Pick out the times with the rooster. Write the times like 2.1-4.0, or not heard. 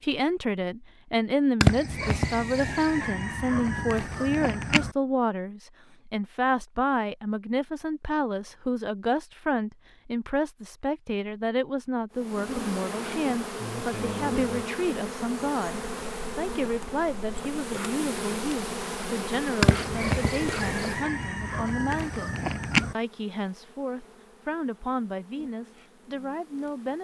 1.6-5.0, 19.6-22.9.